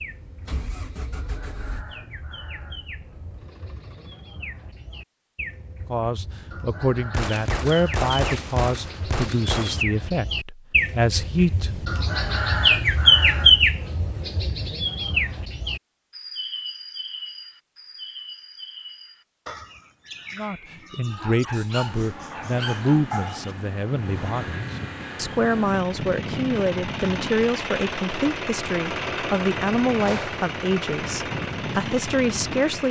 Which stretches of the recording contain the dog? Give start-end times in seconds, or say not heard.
21.1-23.5.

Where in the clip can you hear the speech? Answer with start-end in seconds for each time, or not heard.
5.8-11.9, 20.4-32.8.